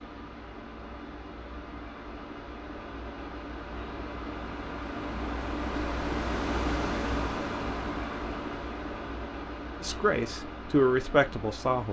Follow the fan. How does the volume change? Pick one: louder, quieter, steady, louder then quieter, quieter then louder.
louder then quieter.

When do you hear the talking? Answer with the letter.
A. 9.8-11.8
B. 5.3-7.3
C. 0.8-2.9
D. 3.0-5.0
A.